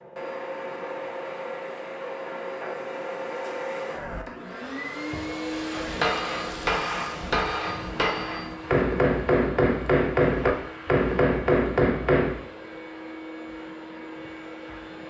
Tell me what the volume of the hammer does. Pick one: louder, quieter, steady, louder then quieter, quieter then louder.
louder.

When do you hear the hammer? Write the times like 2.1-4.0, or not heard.
5.7-12.3.